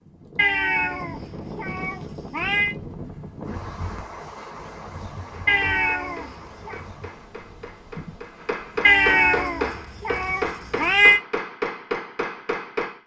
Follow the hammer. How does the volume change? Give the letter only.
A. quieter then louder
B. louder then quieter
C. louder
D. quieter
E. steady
C.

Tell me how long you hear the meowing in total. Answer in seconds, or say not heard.
6 s.